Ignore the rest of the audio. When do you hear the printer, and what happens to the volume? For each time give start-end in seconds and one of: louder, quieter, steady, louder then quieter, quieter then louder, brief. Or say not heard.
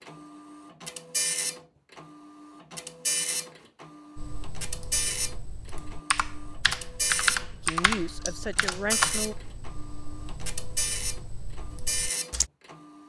0.0-13.0 steady.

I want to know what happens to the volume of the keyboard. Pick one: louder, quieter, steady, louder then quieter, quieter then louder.
louder then quieter.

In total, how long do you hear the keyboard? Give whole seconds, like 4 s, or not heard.
8 s.